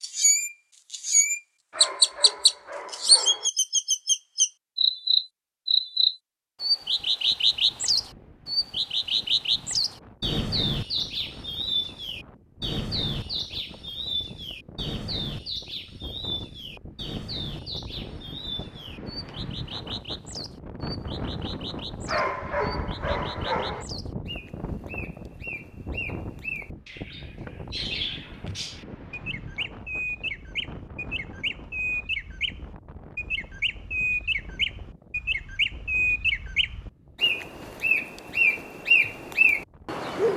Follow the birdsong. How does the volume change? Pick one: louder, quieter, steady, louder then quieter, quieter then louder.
quieter then louder.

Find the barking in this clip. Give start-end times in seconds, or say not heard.
1.7-3.5, 22.1-23.9.